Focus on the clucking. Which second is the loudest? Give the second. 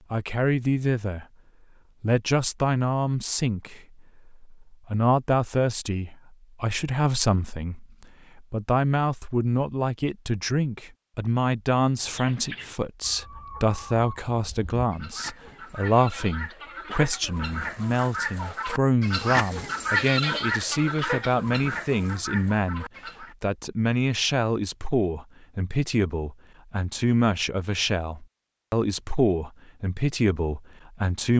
20 s.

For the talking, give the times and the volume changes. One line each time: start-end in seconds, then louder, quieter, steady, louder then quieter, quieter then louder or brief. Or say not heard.
0.1-1.2 brief
2.0-31.3 steady.